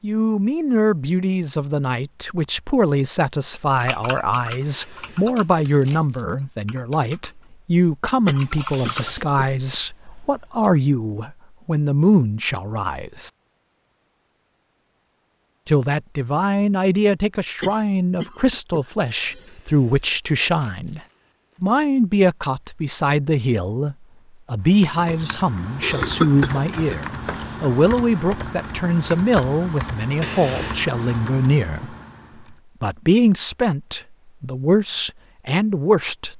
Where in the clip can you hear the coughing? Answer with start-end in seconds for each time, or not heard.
8.2-9.4, 17.6-19.6, 25.8-27.7.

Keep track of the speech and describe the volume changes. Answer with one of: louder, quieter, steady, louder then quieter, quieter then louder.
steady.